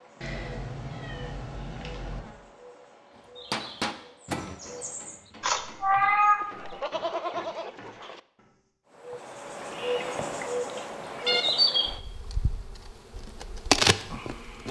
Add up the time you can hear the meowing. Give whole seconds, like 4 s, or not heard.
4 s.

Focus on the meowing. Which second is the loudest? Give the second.
6 s.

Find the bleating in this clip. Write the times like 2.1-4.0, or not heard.
6.3-8.2.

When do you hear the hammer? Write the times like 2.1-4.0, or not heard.
3.5-8.7.